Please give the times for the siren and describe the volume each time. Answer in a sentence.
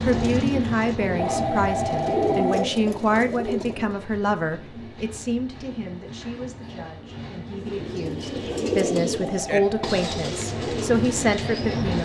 You can't hear the siren here.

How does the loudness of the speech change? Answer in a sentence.
The volume of the speech goes down, then up.